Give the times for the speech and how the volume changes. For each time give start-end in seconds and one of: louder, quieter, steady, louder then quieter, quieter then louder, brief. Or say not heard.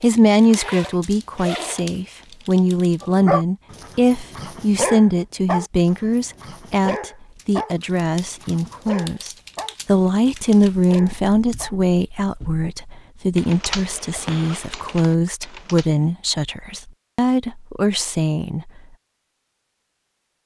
0.0-18.7 steady.